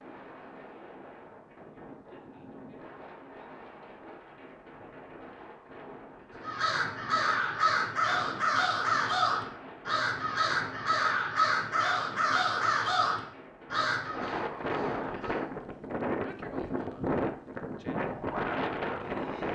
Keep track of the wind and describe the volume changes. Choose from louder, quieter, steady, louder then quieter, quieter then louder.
louder.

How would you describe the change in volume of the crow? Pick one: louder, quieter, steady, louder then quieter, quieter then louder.
quieter.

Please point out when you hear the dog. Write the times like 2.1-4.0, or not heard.
not heard.